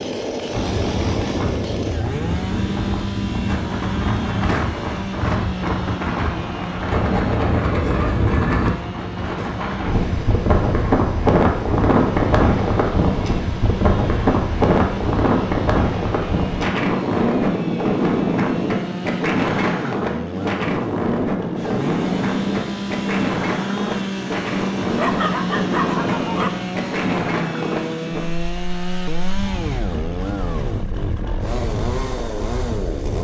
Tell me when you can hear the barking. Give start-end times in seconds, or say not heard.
24.9-26.5.